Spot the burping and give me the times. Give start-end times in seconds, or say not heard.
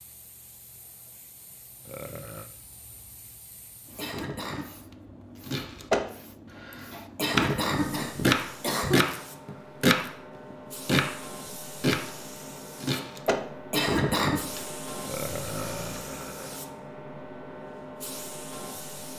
1.9-2.5, 15.1-16.6.